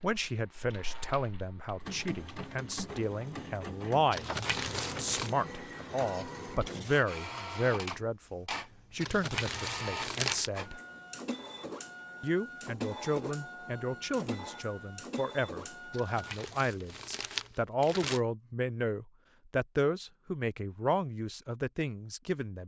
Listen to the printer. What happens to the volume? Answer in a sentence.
The loudness of the printer stays about the same.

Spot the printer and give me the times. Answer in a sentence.
You can hear the printer from 1.8 to 16.1 s.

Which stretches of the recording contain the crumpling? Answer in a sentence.
The crumpling can be heard from 4.1 to 5.3 s, from 9.0 to 10.5 s and from 15.9 to 18.2 s.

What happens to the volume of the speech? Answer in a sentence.
The volume of the speech stays about the same.